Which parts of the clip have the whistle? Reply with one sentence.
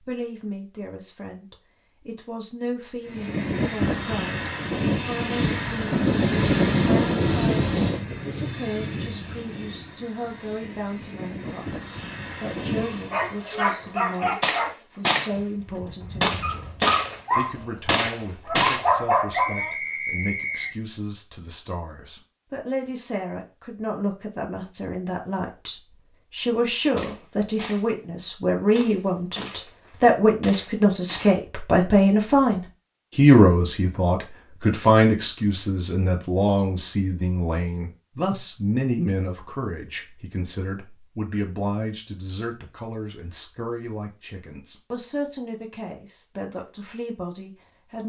The whistle can be heard from 19.3 to 20.8 s.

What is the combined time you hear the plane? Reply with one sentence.
You can hear the plane for 10 seconds altogether.